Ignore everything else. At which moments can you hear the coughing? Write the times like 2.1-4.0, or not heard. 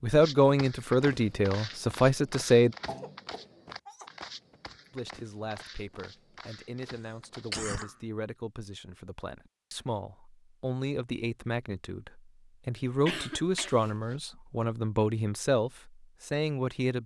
2.9-4.1, 7.5-8.0, 12.8-14.2.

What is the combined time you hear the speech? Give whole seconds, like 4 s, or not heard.
15 s.